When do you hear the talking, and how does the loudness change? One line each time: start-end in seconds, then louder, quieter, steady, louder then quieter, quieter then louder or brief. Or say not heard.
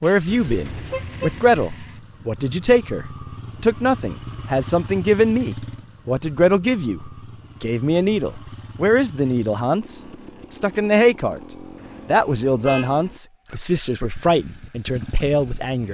0.0-15.8 steady.